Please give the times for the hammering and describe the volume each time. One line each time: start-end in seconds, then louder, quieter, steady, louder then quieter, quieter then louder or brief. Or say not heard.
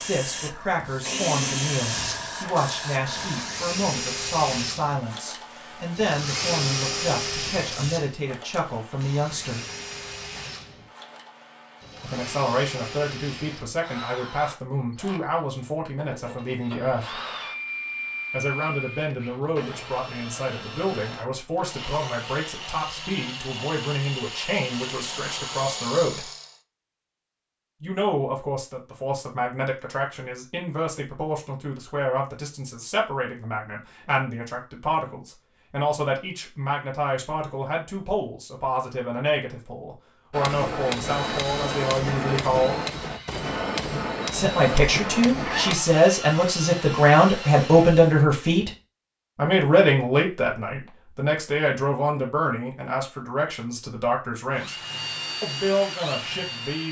40.3-45.8 steady.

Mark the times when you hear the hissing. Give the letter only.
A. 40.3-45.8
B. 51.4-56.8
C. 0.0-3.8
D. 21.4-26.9
C.